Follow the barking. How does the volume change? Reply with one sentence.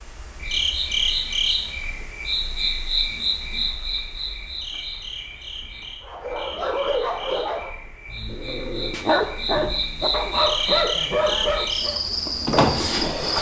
The loudness of the barking goes down, then up.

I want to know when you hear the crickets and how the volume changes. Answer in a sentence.
You can hear the crickets from 0.0 to 13.3 s, getting quieter then louder.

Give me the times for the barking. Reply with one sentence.
You can hear the barking from 6.0 to 12.0 s.